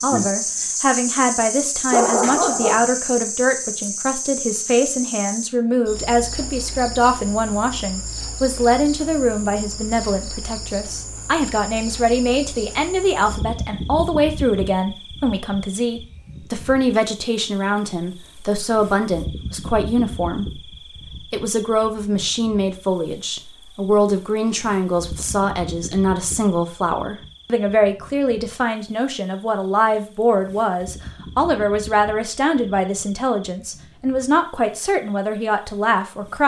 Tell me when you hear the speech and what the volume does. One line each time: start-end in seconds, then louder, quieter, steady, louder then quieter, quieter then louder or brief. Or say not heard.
0.0-36.4 steady.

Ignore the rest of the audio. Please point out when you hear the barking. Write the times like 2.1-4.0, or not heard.
1.9-2.9.